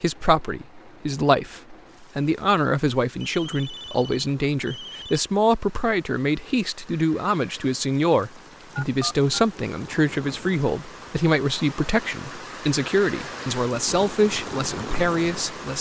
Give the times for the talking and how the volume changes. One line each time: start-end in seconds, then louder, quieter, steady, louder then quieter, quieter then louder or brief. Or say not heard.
0.0-15.7 steady.